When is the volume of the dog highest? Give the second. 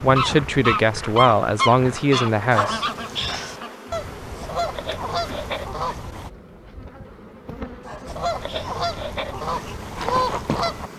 3 s.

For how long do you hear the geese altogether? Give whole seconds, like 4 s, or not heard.
9 s.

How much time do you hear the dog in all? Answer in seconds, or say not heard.
2 s.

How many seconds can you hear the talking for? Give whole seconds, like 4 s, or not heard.
3 s.